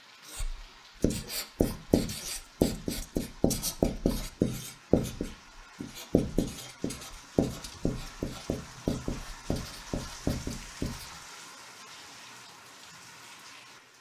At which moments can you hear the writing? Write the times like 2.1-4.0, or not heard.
0.2-11.2.